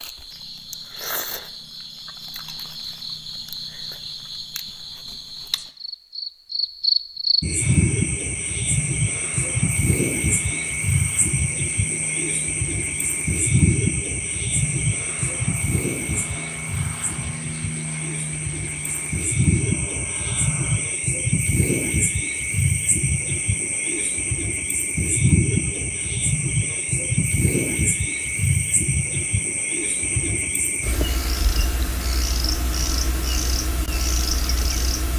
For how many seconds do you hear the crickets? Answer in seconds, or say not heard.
35 s.